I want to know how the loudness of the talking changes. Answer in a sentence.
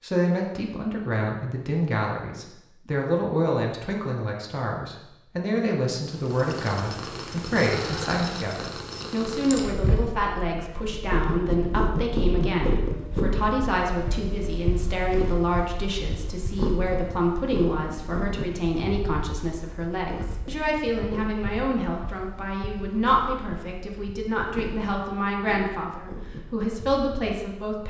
The loudness of the talking stays about the same.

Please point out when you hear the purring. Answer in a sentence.
The purring can be heard from 6.0 to 27.6 s.